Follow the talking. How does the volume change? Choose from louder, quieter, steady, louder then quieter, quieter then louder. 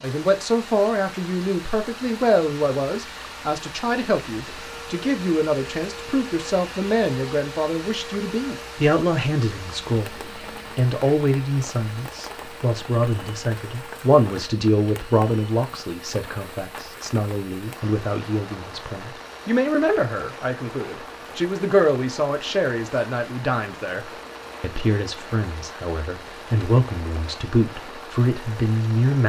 steady.